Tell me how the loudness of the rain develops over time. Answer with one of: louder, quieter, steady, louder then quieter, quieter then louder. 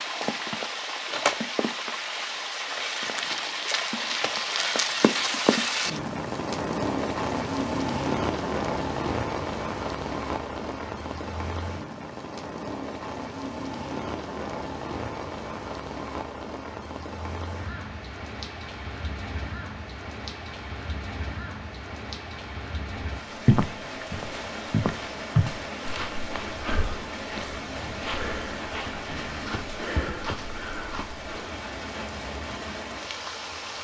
quieter.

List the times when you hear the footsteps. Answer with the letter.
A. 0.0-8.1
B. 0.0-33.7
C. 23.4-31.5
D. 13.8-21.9
C.